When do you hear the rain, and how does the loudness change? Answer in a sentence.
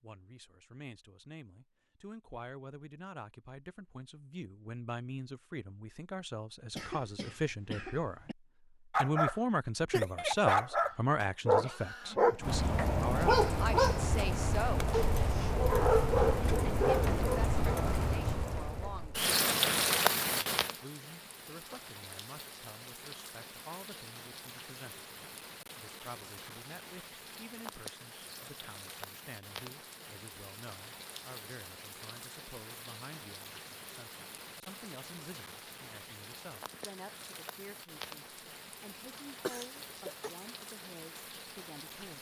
The rain can be heard from 12.4 to 42.1 s, getting quieter.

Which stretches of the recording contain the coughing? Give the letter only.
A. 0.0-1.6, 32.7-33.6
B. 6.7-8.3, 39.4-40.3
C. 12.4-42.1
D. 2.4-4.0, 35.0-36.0
B.